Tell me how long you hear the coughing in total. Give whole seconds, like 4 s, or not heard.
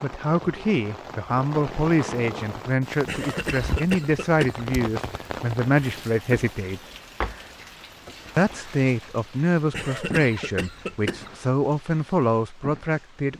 3 s.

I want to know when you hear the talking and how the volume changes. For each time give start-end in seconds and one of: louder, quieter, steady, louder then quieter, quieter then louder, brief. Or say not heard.
0.0-6.8 steady
8.3-13.3 quieter then louder.